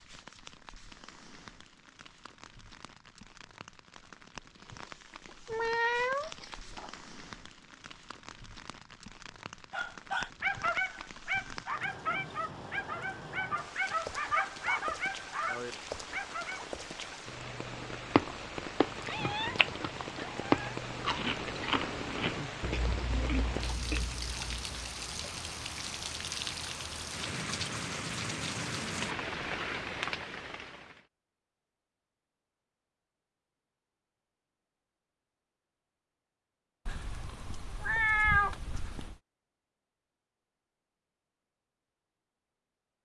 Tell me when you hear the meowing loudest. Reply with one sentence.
The volume of the meowing peaks at 38 seconds.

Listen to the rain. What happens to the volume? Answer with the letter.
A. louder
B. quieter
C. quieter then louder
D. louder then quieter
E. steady
A.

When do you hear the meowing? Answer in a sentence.
You can hear the meowing from 5.2 to 7.0 s, from 19.1 to 20.8 s and from 36.9 to 39.1 s.